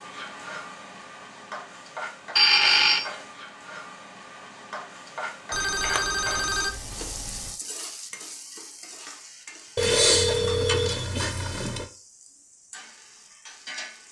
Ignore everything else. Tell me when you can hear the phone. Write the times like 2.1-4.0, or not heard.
2.4-3.1, 5.5-7.5, 9.8-11.8.